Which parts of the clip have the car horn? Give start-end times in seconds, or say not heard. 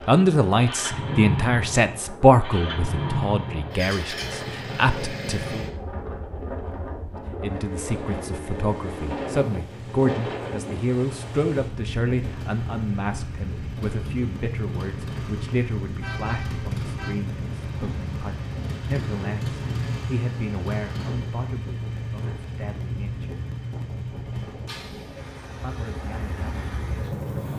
16.0-17.2.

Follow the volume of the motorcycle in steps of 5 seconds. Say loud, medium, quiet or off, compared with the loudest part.
loud, medium, medium, loud, loud, medium.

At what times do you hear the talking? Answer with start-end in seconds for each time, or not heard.
0.1-5.7, 7.4-23.3, 25.6-27.5.